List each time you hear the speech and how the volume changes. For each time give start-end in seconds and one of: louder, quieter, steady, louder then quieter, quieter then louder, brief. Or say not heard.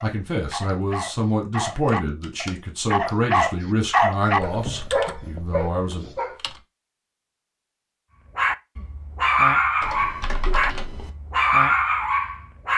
0.0-6.0 quieter.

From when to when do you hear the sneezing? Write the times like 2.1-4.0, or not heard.
not heard.